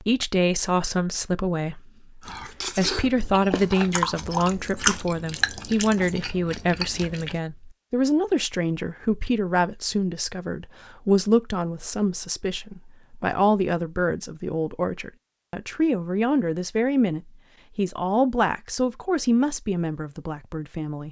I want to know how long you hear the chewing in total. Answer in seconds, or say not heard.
5 s.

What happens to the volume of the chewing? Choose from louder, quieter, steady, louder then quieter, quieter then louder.
louder then quieter.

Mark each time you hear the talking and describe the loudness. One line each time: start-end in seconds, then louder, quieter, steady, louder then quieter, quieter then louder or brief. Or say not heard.
0.0-21.0 steady.